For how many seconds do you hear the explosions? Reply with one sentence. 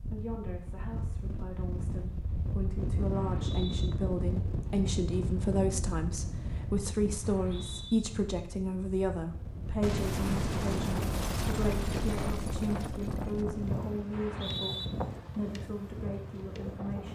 The explosions can be heard for 4 seconds in total.